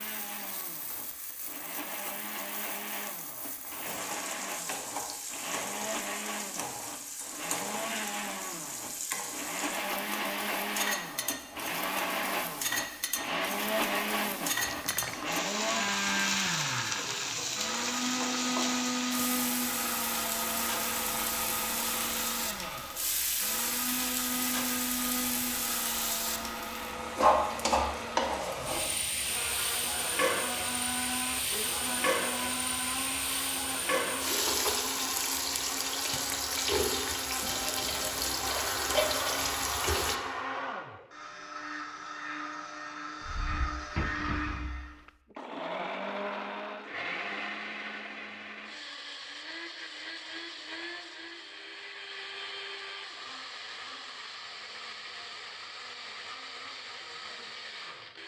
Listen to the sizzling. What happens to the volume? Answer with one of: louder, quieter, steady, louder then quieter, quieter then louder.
louder.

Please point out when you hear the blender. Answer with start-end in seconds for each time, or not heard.
0.0-58.2.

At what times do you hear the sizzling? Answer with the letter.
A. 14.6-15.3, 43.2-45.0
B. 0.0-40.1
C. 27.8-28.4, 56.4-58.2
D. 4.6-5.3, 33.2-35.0
B.